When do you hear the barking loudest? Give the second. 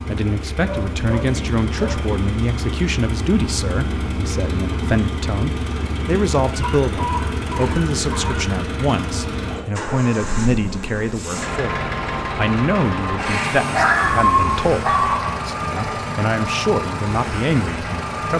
14 s.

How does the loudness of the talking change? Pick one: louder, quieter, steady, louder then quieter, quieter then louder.
steady.